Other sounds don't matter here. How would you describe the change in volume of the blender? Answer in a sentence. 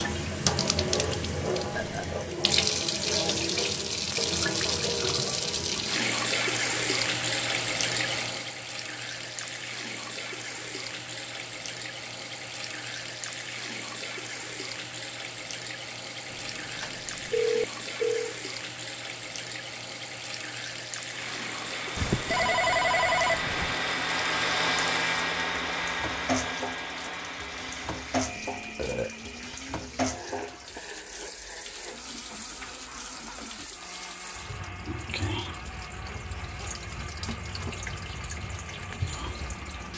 The volume of the blender goes down.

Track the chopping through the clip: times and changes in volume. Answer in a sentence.
The chopping can't be heard in this clip.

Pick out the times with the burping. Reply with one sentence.
The burping can be heard from 1.7 to 2.1 s and from 28.6 to 29.1 s.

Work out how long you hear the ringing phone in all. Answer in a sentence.
You can hear the ringing phone for 4 seconds altogether.